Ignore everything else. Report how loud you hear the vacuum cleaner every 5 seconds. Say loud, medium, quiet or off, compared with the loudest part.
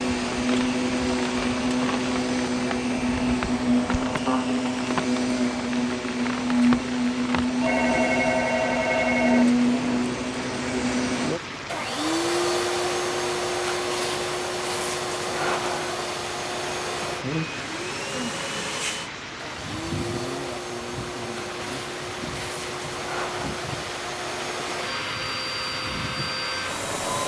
loud, loud, loud, medium, medium, medium.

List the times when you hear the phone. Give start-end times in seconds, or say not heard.
7.6-9.4.